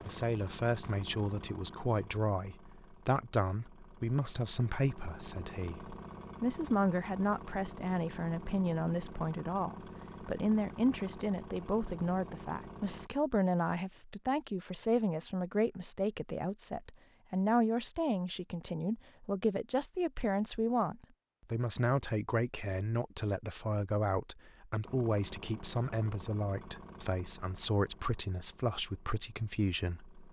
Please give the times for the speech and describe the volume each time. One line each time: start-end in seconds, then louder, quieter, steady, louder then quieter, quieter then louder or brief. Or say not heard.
0.1-30.2 steady.